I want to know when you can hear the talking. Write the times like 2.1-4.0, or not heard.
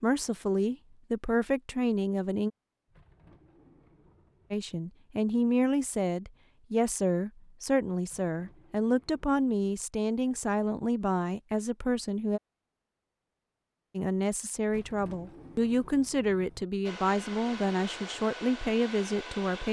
0.0-2.5, 4.5-12.4, 13.9-19.6.